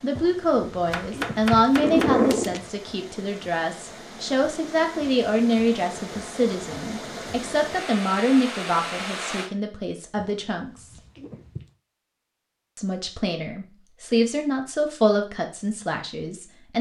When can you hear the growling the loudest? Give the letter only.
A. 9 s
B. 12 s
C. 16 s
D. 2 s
D.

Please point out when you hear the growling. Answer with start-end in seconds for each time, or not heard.
0.1-2.6, 10.2-11.7.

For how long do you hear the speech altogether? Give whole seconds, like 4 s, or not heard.
15 s.